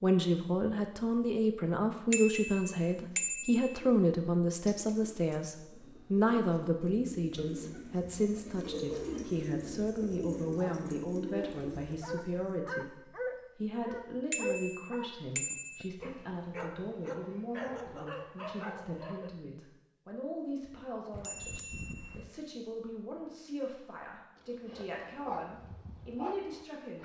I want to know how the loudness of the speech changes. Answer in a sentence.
The loudness of the speech goes down.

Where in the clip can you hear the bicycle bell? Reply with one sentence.
You can hear the bicycle bell from 2.1 to 3.8 s, from 14.3 to 15.9 s and from 21.1 to 22.3 s.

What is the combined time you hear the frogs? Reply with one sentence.
You can't hear the frogs here.